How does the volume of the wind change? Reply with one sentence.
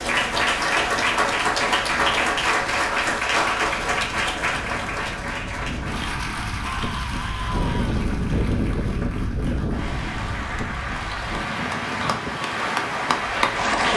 The volume of the wind goes up, then down.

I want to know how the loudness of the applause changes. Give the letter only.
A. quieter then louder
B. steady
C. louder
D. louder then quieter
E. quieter
A.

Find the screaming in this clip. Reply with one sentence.
You can hear the screaming from 6.7 to 8.1 s.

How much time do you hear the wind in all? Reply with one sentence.
You can hear the wind for 14 seconds altogether.